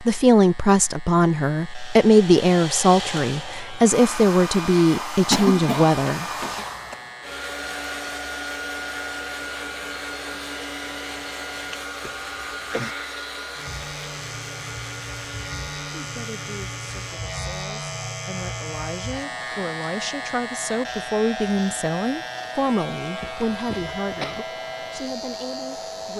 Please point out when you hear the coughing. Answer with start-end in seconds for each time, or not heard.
5.3-7.0, 12.0-12.9, 23.2-24.4.